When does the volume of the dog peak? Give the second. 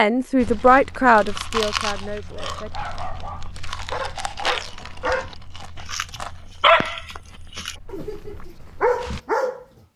7 s.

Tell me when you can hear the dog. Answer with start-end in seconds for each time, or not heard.
2.3-9.7.